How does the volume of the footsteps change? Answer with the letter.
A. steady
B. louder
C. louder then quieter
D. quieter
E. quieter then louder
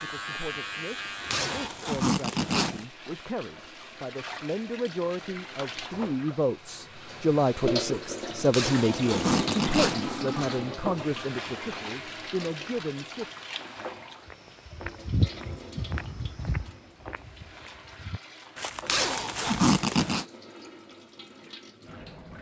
E.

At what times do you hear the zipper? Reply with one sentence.
You can hear the zipper from 1.3 to 2.9 s, from 8.5 to 10.1 s and from 18.9 to 20.2 s.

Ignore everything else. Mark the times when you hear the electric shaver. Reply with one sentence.
You can hear the electric shaver from 0.0 to 1.7 s.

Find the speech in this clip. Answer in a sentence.
You can hear the speech from 0.0 to 13.3 s.